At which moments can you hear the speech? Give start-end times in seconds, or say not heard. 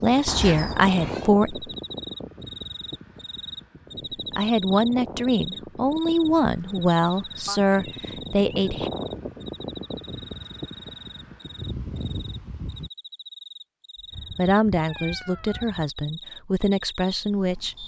0.0-1.6, 4.3-8.9, 14.3-17.8.